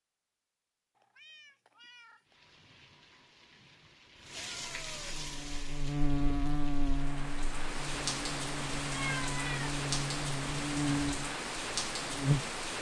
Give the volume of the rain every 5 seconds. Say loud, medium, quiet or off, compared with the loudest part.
medium, loud, loud.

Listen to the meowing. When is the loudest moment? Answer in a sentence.
The volume of the meowing peaks at 9 seconds.